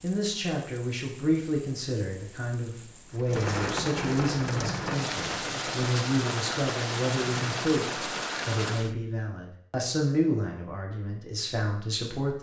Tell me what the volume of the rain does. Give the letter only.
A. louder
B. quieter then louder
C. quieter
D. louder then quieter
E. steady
A.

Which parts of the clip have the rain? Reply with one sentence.
You can hear the rain from 0.0 to 8.9 s.